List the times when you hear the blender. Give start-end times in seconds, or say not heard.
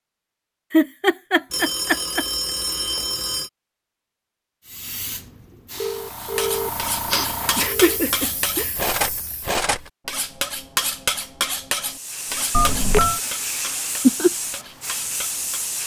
not heard.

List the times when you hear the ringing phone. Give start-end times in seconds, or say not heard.
1.5-3.5, 5.8-8.0, 12.5-13.2.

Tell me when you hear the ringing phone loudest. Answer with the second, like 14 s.
13 s.